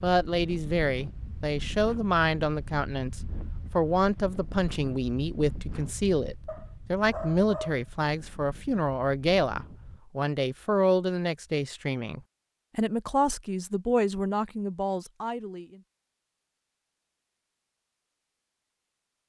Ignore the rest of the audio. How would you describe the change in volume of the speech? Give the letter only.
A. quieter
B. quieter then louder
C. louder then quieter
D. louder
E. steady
E.